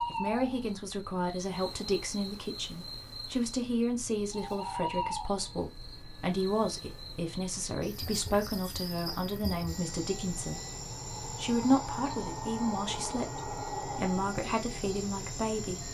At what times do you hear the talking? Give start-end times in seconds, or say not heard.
0.1-10.6, 11.2-15.8.